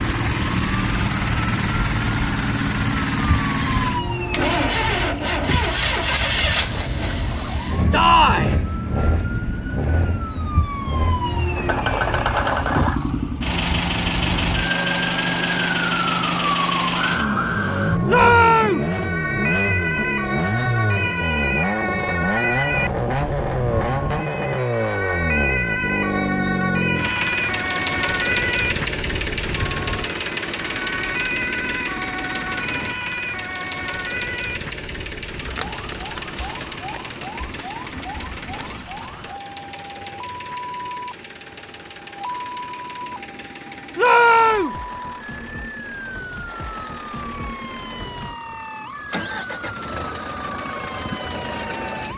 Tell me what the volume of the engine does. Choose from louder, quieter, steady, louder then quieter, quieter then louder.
quieter.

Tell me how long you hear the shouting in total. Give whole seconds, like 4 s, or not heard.
2 s.